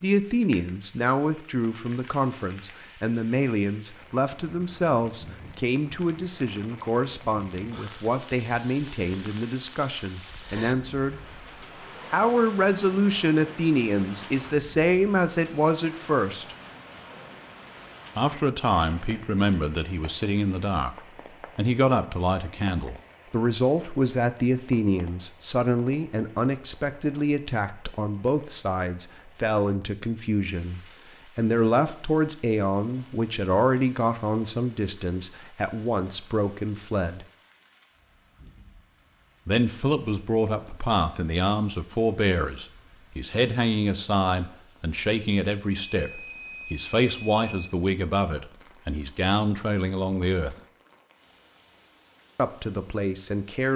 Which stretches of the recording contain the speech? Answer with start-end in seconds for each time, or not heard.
0.0-11.2, 12.1-16.6, 18.1-20.9, 21.6-37.2, 39.5-50.5, 52.4-53.7.